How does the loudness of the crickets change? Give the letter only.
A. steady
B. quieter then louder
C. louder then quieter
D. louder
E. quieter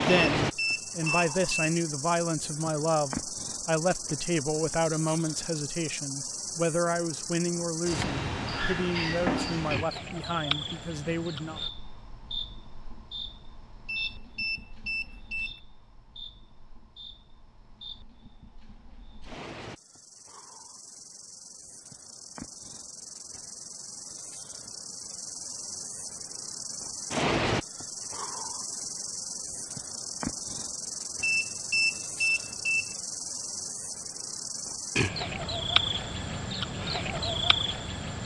B.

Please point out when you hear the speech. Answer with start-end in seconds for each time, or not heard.
0.0-11.6.